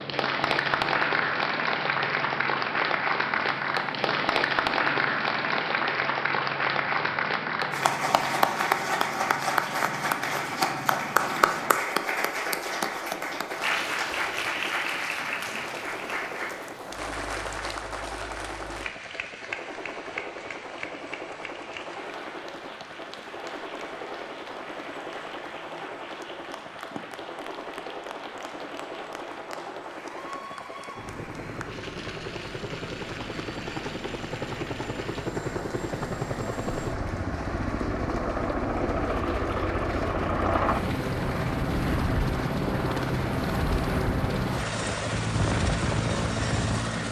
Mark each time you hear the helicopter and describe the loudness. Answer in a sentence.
You can hear the helicopter from 0.0 to 47.0 s, getting louder.